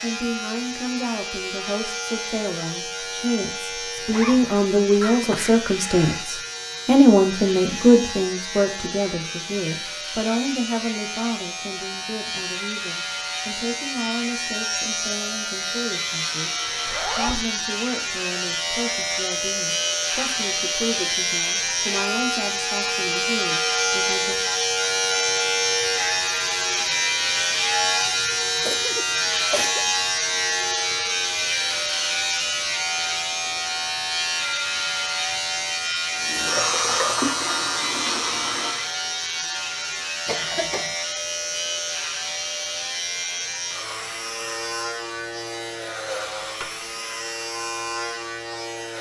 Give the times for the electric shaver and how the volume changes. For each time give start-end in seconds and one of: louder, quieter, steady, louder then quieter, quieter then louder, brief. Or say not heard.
0.0-48.9 louder then quieter.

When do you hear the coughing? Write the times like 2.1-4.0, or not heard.
5.0-6.3, 28.6-29.9, 40.2-41.0.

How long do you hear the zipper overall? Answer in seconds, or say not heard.
2 s.